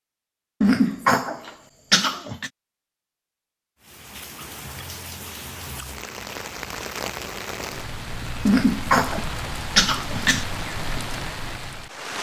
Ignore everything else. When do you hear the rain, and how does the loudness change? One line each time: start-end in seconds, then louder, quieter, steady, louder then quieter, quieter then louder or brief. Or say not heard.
3.8-12.1 louder.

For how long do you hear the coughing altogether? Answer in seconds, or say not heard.
4 s.